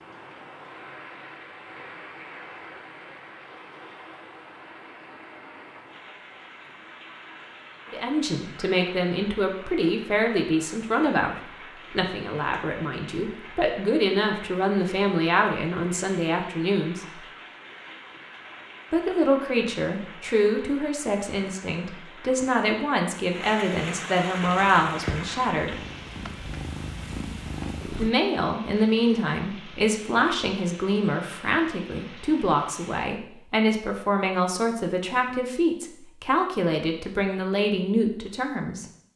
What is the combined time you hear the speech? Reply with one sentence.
You can hear the speech for 27 seconds altogether.